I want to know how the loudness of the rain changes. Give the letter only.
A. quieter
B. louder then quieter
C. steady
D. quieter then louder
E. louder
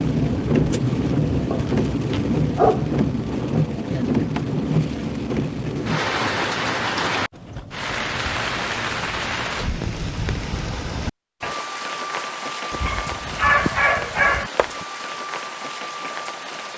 A.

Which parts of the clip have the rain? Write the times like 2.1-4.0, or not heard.
0.0-16.7.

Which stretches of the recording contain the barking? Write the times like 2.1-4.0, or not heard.
1.5-2.9, 12.7-14.5.